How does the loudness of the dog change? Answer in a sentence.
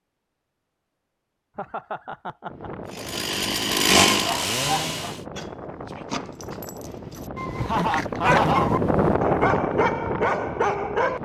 The loudness of the dog goes down, then up.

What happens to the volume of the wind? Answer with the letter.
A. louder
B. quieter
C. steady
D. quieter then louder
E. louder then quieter
A.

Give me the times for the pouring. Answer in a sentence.
The pouring can't be heard in this clip.